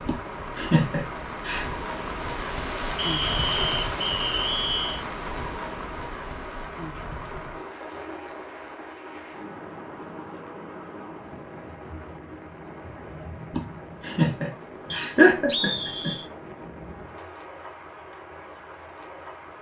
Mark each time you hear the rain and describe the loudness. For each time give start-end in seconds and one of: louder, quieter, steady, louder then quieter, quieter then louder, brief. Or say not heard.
0.0-19.5 quieter.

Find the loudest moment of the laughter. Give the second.
15 s.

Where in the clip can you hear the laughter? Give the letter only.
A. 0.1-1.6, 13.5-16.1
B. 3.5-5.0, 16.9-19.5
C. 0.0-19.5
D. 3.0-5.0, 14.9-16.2
A.